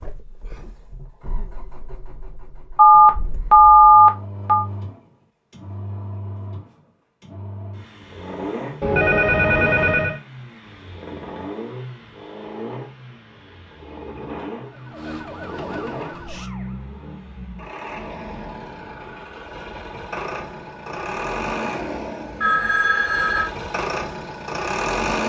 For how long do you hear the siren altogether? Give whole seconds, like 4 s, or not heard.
2 s.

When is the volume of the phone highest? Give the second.
4 s.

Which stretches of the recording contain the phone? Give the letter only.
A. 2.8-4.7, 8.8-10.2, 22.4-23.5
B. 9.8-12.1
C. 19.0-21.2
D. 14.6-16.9
A.